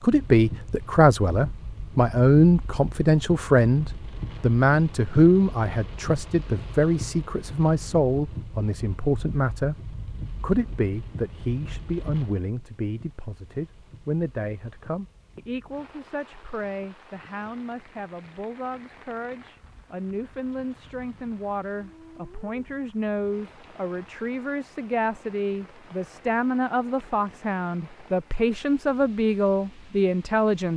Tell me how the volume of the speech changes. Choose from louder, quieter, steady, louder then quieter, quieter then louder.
quieter then louder.